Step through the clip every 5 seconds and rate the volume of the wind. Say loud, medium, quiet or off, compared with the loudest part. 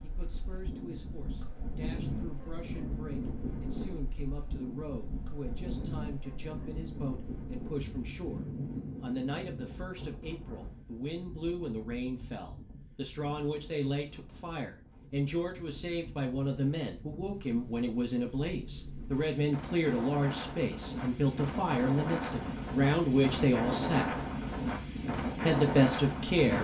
medium, medium, quiet, quiet, loud, loud.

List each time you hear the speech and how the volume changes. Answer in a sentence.
The speech can be heard from 0.0 to 24.1 s, getting louder; and briefly from 25.4 to 26.5 s.